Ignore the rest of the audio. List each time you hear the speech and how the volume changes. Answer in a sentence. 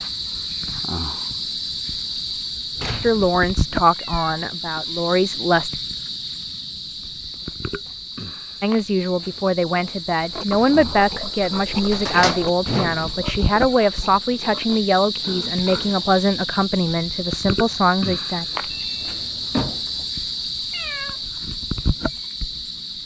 You can hear the speech briefly from 3.0 to 5.7 s; and from 8.6 to 18.4 s, at a steady volume.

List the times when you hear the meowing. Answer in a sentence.
You can hear the meowing from 4.0 to 4.5 s and from 20.7 to 21.2 s.